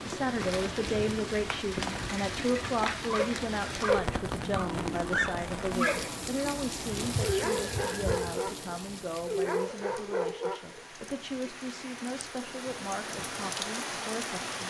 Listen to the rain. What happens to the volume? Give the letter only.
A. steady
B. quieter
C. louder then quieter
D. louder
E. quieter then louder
E.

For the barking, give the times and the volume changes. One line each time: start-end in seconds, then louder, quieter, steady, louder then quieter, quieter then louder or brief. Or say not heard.
3.0-11.1 steady.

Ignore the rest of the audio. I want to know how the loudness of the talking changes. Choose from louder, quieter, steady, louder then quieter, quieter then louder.
quieter.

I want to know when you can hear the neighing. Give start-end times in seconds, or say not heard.
7.0-8.3.